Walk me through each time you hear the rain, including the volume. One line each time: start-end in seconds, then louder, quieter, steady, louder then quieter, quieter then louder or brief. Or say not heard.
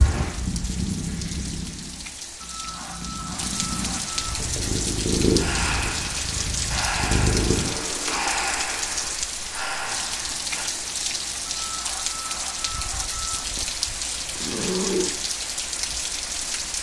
0.0-16.7 louder.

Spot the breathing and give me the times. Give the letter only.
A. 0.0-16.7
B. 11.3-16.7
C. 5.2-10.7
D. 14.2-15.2
C.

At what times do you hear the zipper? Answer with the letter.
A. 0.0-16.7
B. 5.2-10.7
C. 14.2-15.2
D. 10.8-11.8
C.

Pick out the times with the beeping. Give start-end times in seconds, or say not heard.
2.5-4.2, 11.6-13.4.